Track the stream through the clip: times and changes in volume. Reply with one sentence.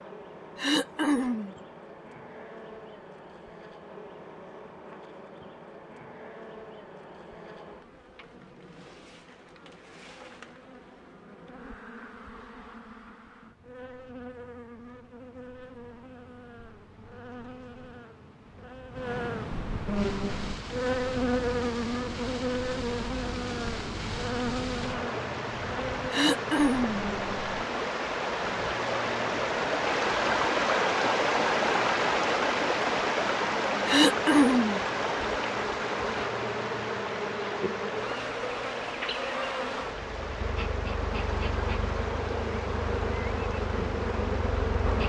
The stream can be heard from 19.9 to 45.0 s, getting louder then quieter.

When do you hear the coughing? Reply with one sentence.
The coughing can be heard from 0.6 to 1.6 s, from 26.1 to 27.1 s and from 33.9 to 34.8 s.